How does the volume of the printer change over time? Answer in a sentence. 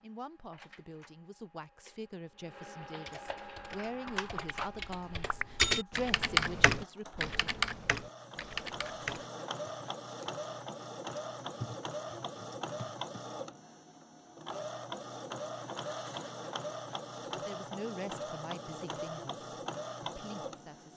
The volume of the printer goes up.